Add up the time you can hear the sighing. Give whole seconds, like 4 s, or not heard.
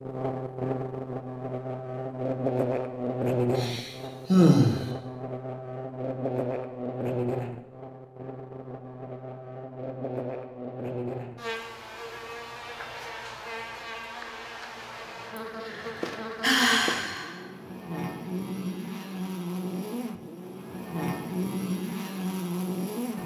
3 s.